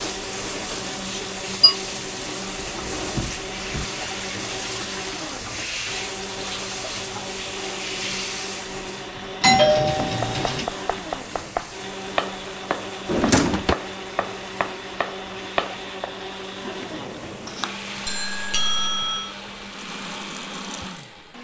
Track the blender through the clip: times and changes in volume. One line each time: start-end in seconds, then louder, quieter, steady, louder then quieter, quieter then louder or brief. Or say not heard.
0.0-21.3 steady.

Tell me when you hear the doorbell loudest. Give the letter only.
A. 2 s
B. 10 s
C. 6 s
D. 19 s
B.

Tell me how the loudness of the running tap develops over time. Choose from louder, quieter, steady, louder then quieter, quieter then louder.
quieter.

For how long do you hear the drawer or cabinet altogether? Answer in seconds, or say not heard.
2 s.